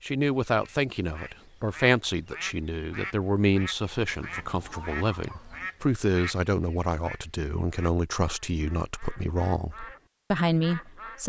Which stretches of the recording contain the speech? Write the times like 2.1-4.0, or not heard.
0.0-11.2.